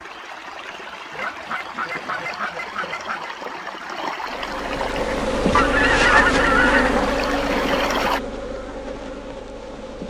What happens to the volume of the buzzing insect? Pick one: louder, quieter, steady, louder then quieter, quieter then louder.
quieter.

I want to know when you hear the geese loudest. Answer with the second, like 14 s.
6 s.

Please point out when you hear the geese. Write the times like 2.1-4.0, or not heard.
1.1-3.3, 5.5-7.0.